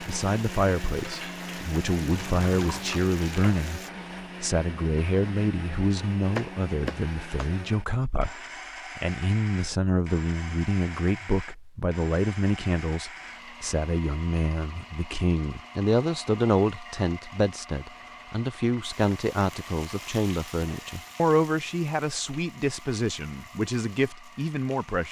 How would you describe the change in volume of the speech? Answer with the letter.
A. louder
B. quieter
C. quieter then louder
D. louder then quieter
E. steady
E.